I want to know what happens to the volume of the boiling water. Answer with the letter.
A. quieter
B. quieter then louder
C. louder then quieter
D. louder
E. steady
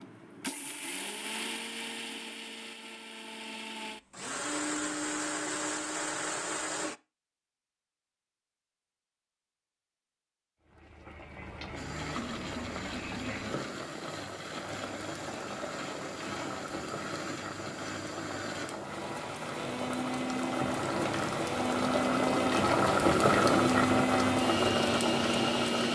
D.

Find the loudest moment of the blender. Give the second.
24 s.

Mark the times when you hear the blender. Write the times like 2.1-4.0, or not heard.
0.0-7.0, 11.8-25.8.